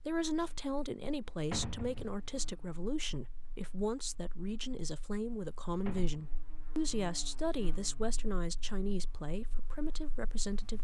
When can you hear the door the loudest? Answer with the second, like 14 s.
2 s.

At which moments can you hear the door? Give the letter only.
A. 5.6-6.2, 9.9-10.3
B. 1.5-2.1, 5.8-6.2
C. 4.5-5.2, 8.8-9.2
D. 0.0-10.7
B.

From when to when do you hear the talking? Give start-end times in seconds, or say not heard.
0.0-10.7.